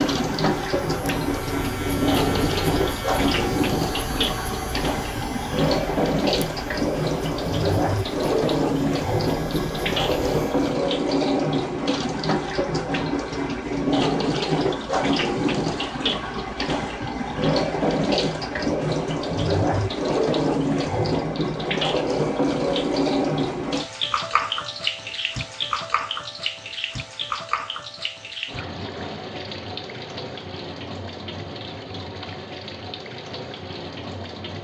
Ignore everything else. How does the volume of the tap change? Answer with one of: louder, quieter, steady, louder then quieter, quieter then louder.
quieter.